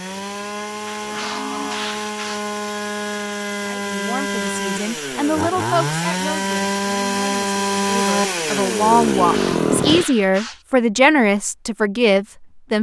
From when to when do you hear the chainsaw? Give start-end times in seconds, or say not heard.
0.0-10.1.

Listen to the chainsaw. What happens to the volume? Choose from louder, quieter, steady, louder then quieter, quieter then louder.
louder.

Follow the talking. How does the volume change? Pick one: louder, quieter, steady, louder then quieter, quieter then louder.
louder.